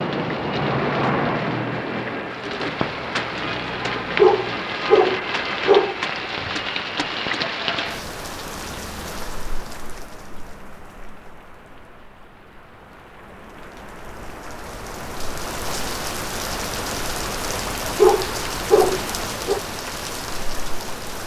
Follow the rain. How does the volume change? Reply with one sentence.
The volume of the rain goes down, then up.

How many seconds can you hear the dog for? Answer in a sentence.
You can hear the dog for 4 seconds altogether.